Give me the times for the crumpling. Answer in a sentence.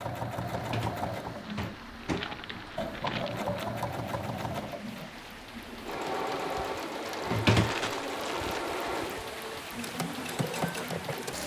The crumpling can be heard from 1.4 to 3.6 s and from 7.0 to 8.7 s.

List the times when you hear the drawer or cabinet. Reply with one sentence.
You can hear the drawer or cabinet from 0.5 to 2.8 s and from 7.2 to 8.0 s.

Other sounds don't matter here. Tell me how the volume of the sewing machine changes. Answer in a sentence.
The loudness of the sewing machine stays about the same.